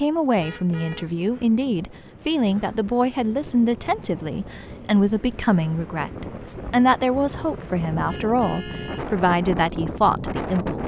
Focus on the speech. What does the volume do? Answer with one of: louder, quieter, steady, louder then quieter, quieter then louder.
steady.